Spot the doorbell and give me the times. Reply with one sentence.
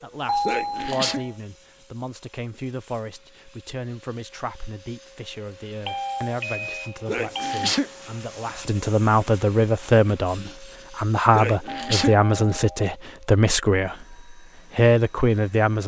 The doorbell can be heard from 0.2 to 1.4 s, from 5.8 to 7.7 s and from 11.7 to 12.8 s.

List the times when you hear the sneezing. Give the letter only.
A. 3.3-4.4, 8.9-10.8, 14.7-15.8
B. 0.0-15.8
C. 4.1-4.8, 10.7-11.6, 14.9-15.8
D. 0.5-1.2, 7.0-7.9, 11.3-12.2
D.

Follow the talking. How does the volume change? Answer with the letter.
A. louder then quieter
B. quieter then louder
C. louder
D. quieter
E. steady
C.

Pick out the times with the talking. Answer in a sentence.
You can hear the talking from 0.0 to 15.8 s.